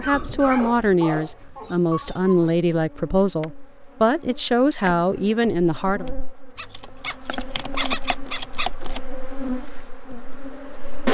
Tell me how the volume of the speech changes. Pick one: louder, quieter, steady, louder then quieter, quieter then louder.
steady.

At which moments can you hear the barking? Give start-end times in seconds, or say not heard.
0.0-2.5, 6.5-8.8.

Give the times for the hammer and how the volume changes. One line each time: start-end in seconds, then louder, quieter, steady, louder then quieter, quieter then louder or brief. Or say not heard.
not heard.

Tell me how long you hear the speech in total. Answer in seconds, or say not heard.
6 s.